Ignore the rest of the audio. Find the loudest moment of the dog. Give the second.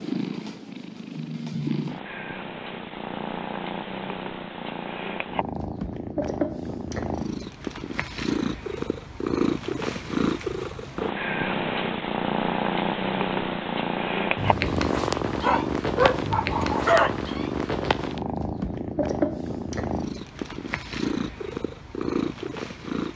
17 s.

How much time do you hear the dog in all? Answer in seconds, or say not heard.
2 s.